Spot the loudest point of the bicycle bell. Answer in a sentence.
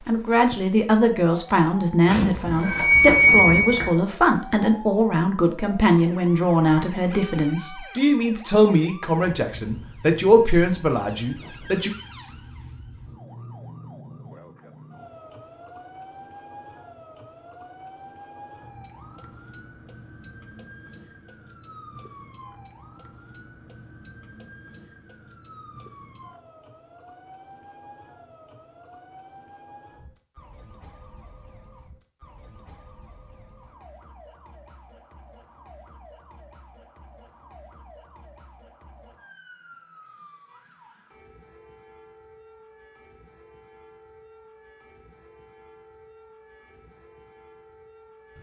The volume of the bicycle bell peaks at 3 seconds.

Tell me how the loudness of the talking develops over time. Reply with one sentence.
The loudness of the talking stays about the same.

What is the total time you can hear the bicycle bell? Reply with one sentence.
The bicycle bell can be heard for 2 seconds in total.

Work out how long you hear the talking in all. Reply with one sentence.
The talking can be heard for 12 seconds in total.